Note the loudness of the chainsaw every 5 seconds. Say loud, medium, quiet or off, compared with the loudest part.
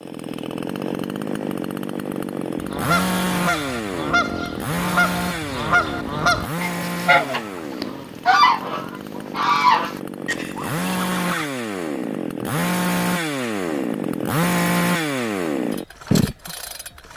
loud, medium, loud, loud.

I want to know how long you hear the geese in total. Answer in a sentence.
You can hear the geese for 9 seconds altogether.